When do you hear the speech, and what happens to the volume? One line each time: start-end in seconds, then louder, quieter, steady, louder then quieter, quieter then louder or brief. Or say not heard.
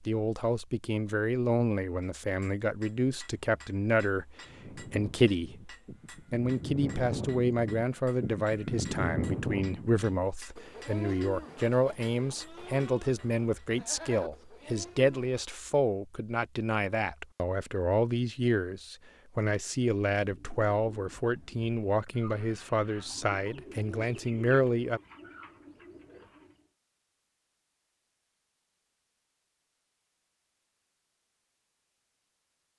0.0-25.0 steady.